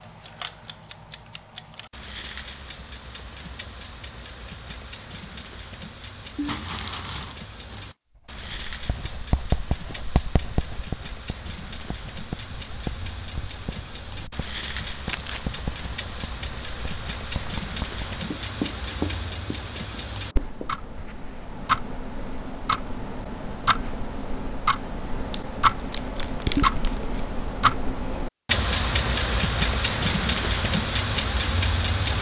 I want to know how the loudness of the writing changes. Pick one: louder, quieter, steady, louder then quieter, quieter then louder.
quieter then louder.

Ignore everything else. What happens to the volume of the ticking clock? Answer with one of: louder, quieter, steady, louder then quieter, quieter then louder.
louder.